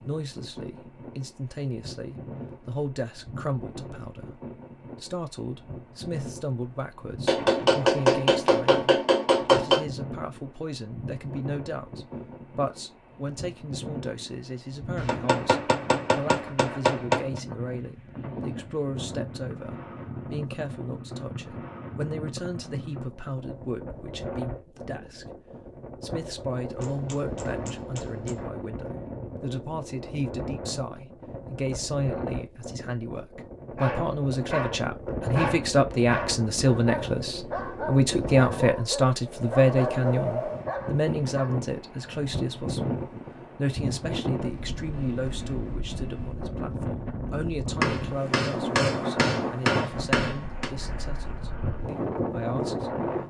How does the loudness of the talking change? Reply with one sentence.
The loudness of the talking goes up, then down.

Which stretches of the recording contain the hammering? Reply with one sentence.
The hammering can be heard from 7.2 to 9.8 s, from 14.9 to 17.4 s, from 26.8 to 28.4 s and from 47.8 to 50.7 s.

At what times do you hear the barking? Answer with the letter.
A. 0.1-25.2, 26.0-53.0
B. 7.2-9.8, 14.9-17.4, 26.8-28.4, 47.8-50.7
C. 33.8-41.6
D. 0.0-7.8
C.